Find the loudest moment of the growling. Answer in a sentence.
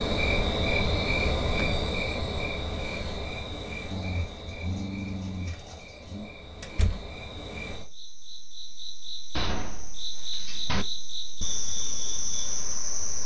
The loudest moment of the growling is at 5 seconds.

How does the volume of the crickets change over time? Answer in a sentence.
The loudness of the crickets goes down, then up.